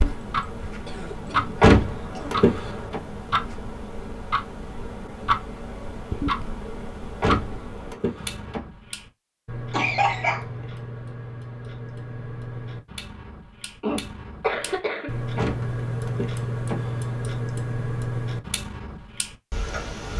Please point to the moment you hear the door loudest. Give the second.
2 s.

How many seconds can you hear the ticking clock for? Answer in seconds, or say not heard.
20 s.